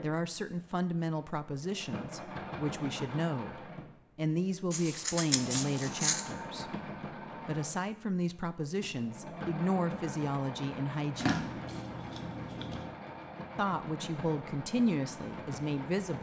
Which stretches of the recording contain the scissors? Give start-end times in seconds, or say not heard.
4.7-6.3, 11.2-12.9.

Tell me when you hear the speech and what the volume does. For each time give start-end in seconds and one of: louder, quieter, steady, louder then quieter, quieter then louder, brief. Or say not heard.
0.0-11.4 steady
13.6-16.1 brief.